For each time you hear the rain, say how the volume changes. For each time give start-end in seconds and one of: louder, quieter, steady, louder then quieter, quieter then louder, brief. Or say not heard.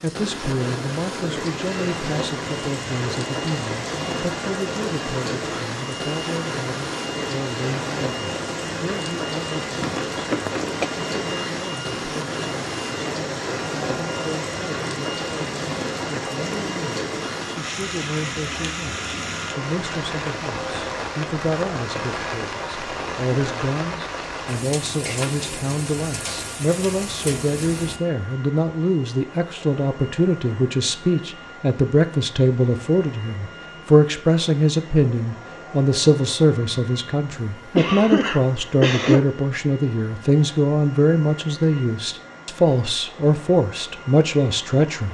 0.0-28.0 steady.